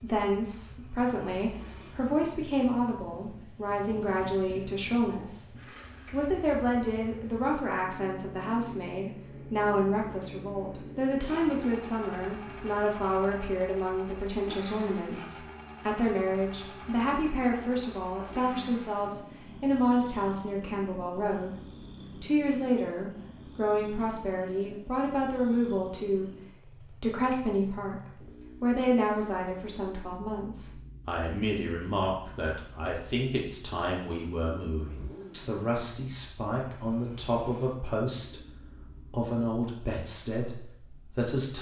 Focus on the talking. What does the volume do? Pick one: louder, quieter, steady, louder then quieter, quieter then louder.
steady.